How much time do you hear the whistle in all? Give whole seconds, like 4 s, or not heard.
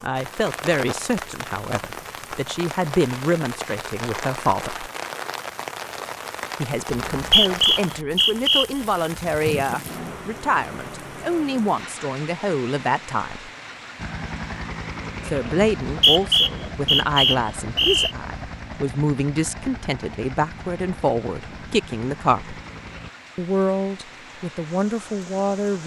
4 s.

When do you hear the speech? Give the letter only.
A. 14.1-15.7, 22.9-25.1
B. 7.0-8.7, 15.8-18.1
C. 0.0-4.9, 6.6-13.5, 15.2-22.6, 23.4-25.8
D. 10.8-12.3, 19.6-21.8
C.